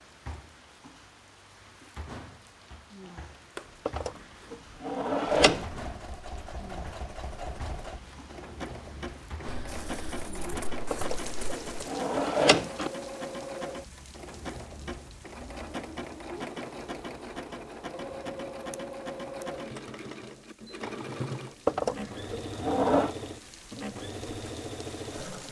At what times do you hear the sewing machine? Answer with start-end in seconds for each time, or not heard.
5.4-25.4.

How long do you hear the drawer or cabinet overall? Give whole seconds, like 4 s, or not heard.
5 s.